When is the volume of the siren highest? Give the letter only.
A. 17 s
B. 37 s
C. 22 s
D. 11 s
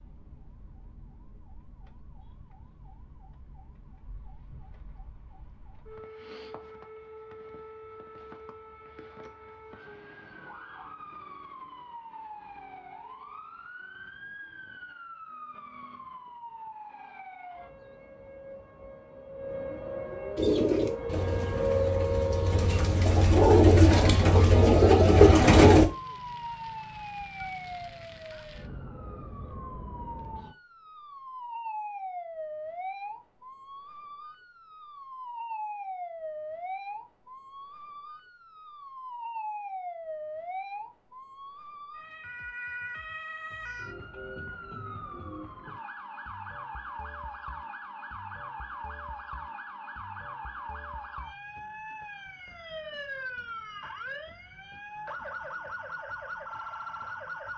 C.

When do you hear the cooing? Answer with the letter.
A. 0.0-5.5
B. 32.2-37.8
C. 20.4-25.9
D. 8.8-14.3
C.